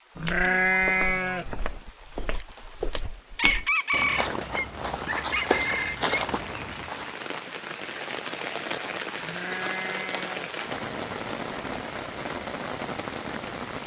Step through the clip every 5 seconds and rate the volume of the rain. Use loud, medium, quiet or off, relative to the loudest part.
quiet, loud, loud.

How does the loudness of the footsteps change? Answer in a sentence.
The volume of the footsteps goes up.